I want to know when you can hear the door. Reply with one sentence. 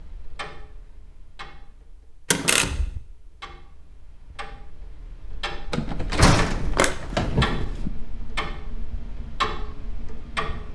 The door can be heard from 2.3 to 3.0 s and from 5.7 to 7.9 s.